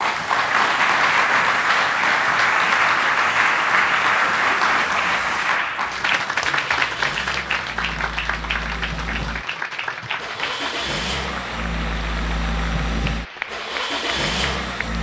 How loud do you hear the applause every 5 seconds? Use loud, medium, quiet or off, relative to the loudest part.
loud, medium, quiet.